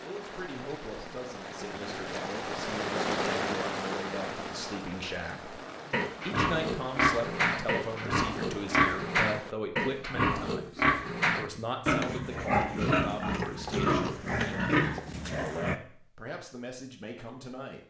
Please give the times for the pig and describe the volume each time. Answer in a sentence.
The pig can be heard from 5.9 to 15.8 s, at a steady volume.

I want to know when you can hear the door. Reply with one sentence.
You can't hear the door here.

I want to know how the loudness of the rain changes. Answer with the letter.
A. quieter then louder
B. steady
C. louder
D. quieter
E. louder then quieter
E.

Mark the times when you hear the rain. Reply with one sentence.
You can hear the rain from 0.0 to 9.6 s.